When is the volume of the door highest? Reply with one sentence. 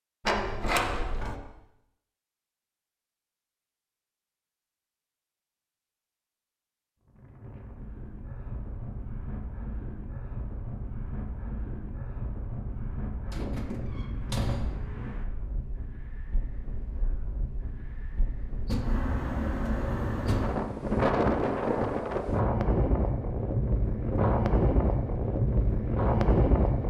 The volume of the door peaks at 1 second.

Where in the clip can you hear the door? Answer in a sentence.
The door can be heard from 0.2 to 1.4 s, from 13.3 to 14.8 s and from 18.6 to 20.5 s.